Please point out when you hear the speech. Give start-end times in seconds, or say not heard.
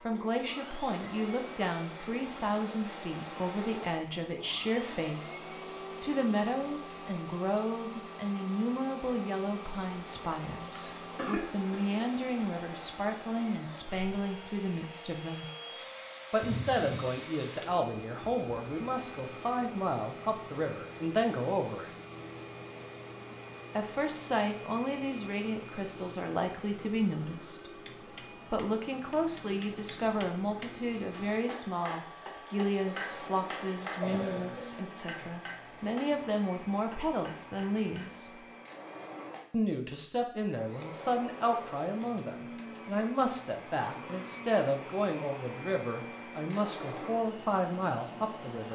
0.0-15.4, 16.3-21.9, 23.8-27.8, 28.5-38.4, 39.5-48.7.